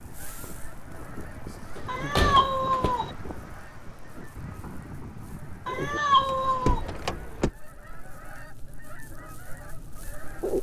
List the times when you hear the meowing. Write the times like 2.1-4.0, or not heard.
1.9-3.1, 5.7-6.8.